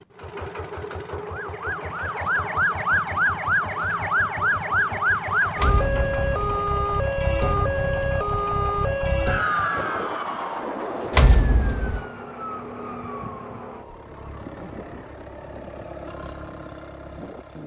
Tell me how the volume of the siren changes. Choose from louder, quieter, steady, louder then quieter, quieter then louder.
quieter.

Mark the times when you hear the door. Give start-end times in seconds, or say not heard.
5.5-6.4, 11.1-12.1.